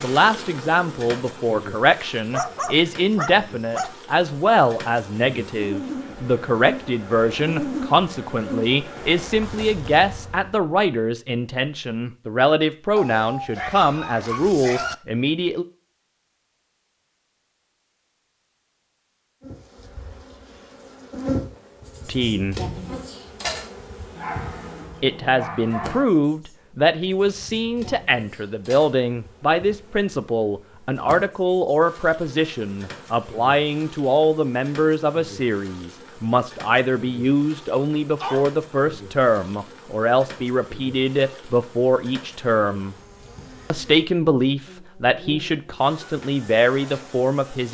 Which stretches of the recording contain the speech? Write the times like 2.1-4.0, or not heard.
0.0-15.7, 22.1-22.6, 25.0-43.0, 43.7-47.6.